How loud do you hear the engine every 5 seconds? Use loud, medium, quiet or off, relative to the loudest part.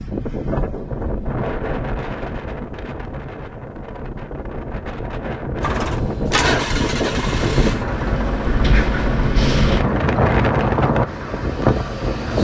off, loud, medium.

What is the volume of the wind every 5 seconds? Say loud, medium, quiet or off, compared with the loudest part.
medium, loud, loud.